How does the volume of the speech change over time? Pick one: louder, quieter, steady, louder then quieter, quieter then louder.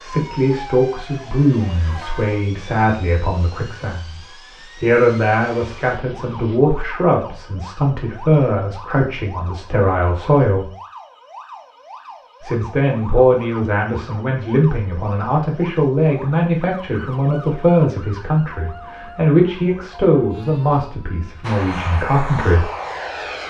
steady.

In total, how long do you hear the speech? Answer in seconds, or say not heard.
20 s.